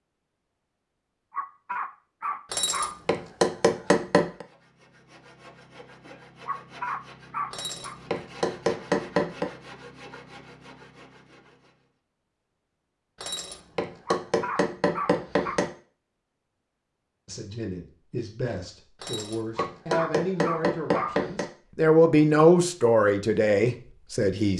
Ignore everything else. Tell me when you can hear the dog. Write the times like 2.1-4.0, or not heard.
1.3-3.0, 6.5-8.0, 14.1-15.6, 19.6-21.2.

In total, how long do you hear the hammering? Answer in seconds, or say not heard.
9 s.